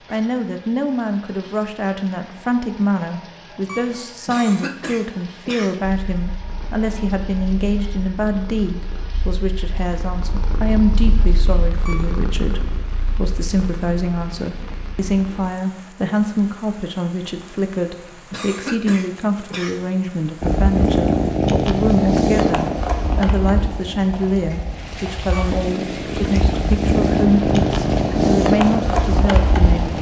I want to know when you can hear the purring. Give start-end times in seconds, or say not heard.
5.8-15.5, 20.4-29.9.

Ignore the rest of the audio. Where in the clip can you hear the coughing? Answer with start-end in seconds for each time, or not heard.
4.2-5.8, 18.3-19.9.